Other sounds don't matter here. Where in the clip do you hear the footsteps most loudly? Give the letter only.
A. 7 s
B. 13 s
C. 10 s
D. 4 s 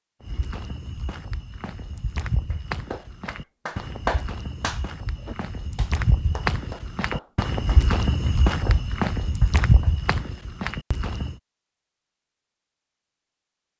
C.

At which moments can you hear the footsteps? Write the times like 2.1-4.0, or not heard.
0.2-11.4.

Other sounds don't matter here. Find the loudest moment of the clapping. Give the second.
4 s.